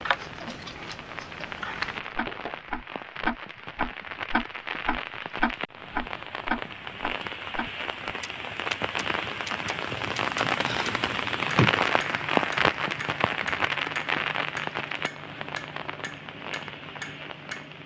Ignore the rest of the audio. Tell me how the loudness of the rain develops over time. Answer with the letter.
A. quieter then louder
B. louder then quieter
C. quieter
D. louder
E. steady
B.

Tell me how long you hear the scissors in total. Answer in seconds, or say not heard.
4 s.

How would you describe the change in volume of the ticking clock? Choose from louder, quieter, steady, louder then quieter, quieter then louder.
louder then quieter.